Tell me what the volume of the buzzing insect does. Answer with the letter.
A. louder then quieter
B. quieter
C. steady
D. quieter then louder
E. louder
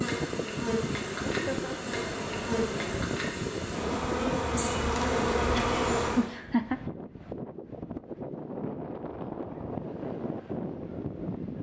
E.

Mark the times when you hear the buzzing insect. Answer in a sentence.
The buzzing insect can be heard from 0.0 to 6.2 s.